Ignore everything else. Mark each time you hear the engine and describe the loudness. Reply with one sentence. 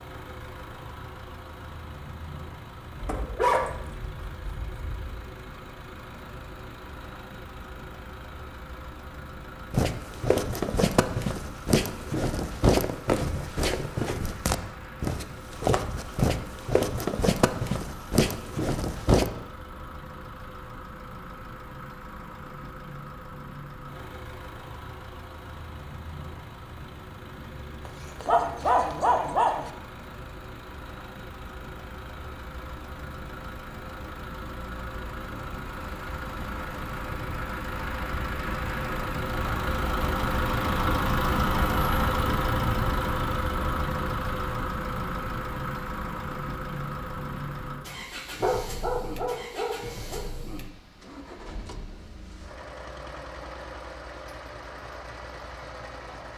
The engine can be heard from 0.0 to 56.3 s, getting louder then quieter.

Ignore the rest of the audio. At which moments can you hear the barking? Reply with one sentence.
You can hear the barking from 3.0 to 5.2 s, from 27.9 to 29.7 s and from 48.4 to 50.2 s.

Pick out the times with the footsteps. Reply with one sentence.
The footsteps can be heard from 9.7 to 19.3 s.